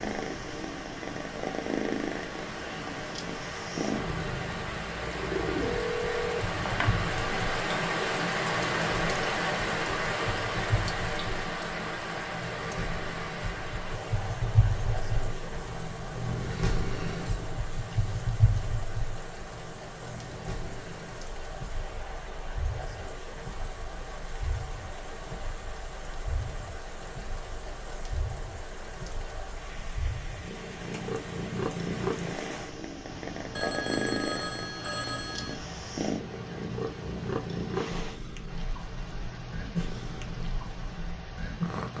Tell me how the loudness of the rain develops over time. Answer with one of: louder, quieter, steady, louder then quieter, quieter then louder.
quieter.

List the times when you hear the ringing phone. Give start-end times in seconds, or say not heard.
5.6-7.0, 33.5-35.5.